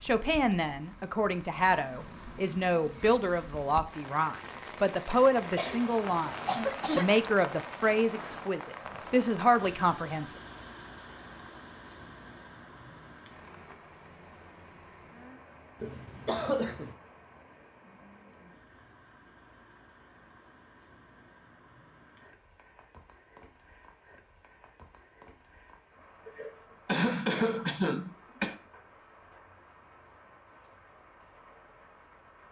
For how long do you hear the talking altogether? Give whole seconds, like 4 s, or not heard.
10 s.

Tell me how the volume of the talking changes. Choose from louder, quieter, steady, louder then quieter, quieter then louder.
steady.